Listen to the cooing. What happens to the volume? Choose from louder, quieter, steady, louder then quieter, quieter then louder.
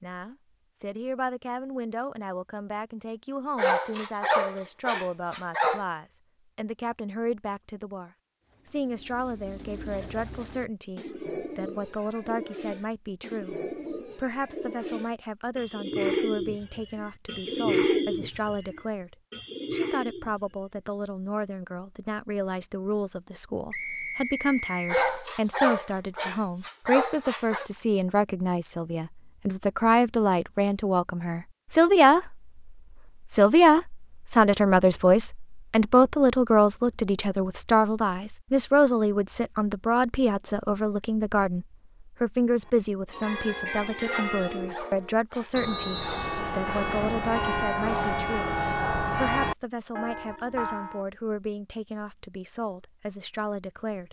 louder.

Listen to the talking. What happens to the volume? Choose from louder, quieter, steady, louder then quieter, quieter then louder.
louder then quieter.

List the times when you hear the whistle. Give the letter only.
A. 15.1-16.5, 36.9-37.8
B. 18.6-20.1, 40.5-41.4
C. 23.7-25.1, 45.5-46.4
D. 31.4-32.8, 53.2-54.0
C.